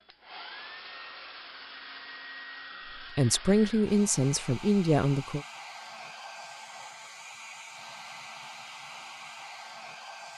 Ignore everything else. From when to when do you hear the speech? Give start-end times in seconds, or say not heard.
3.0-5.5.